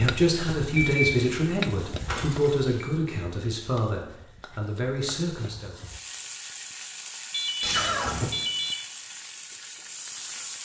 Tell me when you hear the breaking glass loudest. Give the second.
8 s.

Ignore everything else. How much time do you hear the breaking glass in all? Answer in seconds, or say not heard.
2 s.